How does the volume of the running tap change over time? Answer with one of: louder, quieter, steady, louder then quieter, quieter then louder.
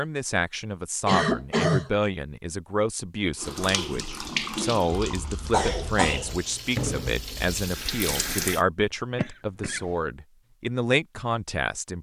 quieter then louder.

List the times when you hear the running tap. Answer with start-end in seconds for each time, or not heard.
3.4-8.6.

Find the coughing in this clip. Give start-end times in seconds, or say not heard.
1.1-1.9, 5.0-6.4, 9.2-9.9.